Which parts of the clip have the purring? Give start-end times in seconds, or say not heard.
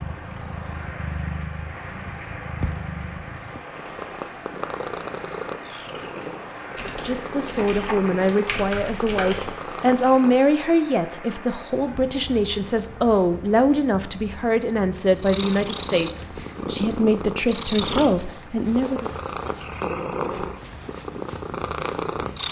0.0-10.4, 15.1-22.4.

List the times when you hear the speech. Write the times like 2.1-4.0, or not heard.
6.8-19.1.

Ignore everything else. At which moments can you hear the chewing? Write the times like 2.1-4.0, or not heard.
not heard.